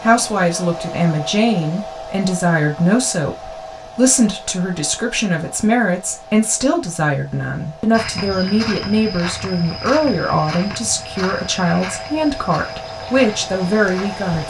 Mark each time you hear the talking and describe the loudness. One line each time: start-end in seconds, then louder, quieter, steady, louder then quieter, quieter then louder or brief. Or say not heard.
0.0-14.4 steady.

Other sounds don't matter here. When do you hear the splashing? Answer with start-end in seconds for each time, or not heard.
not heard.